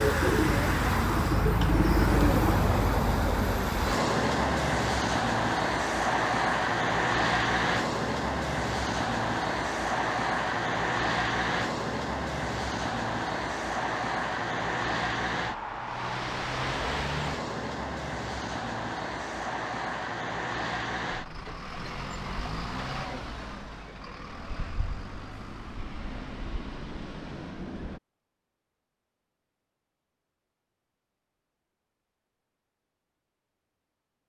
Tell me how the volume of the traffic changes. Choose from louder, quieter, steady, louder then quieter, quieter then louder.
quieter.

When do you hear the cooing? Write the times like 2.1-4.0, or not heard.
0.0-2.6.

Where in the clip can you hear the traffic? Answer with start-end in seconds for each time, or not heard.
0.0-28.0.